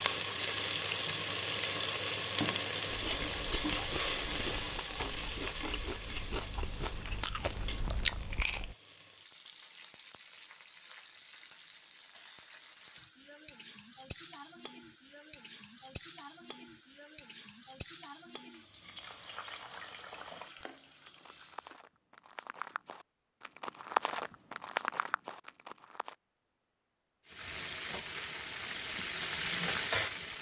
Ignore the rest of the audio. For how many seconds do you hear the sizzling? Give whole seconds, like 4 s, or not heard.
25 s.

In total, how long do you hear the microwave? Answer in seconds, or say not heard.
not heard.